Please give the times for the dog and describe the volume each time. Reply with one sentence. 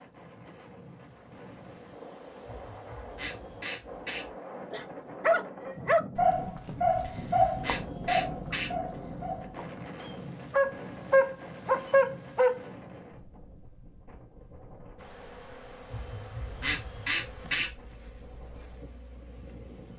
The dog can be heard from 4.7 to 12.7 s, getting quieter then louder.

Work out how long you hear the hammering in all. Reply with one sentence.
You can't hear the hammering here.